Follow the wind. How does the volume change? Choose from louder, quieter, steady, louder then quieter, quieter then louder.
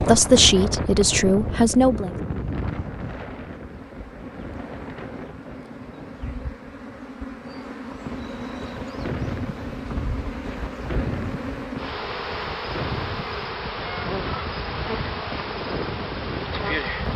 quieter then louder.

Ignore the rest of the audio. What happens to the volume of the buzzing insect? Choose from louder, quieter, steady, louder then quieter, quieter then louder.
louder.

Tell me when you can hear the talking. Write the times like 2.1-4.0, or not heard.
0.0-2.1.